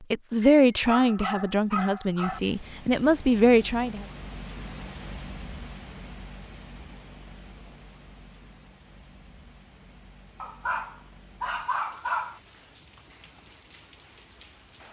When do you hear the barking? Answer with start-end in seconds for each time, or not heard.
0.4-2.4, 10.4-12.4.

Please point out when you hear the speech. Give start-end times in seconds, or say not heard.
0.1-4.0.